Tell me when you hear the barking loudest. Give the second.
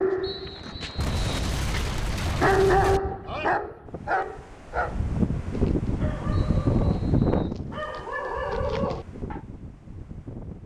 3 s.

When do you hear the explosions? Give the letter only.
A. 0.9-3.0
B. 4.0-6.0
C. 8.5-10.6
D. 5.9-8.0
A.